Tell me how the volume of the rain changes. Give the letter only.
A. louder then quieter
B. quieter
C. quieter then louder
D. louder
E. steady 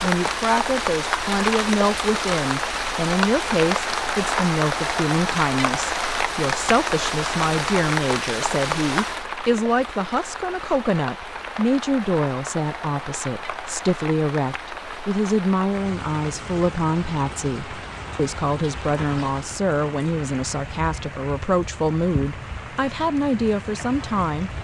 B.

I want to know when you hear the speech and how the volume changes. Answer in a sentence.
You can hear the speech from 0.0 to 24.5 s, at a steady volume.